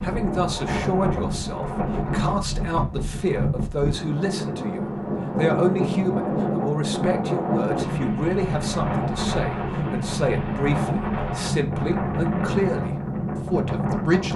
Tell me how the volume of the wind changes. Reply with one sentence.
The volume of the wind stays about the same.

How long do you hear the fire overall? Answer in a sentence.
The fire can't be heard in this clip.